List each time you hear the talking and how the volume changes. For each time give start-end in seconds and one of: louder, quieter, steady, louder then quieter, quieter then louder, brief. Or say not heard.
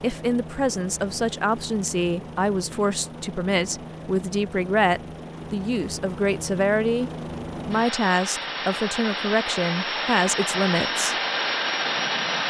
0.0-11.2 steady.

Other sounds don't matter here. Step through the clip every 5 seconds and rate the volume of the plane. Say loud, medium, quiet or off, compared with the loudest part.
quiet, medium, loud.